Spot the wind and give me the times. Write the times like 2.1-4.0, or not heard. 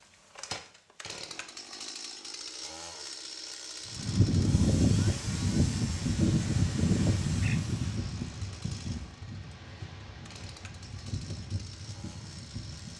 3.9-12.9.